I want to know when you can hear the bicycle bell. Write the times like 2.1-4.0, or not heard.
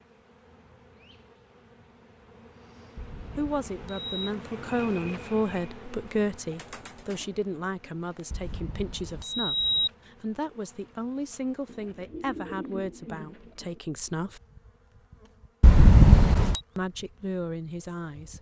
3.0-4.3, 8.3-9.9, 15.6-16.6.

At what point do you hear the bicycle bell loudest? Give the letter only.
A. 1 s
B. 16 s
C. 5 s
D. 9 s
B.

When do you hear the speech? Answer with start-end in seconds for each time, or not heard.
3.4-14.4, 16.8-18.3.